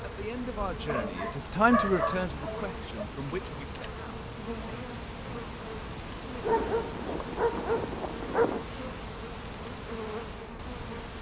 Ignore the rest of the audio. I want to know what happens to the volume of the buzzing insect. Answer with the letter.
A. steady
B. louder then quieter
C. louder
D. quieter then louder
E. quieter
A.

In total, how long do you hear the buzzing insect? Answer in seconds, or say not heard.
11 s.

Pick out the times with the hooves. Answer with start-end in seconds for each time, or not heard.
not heard.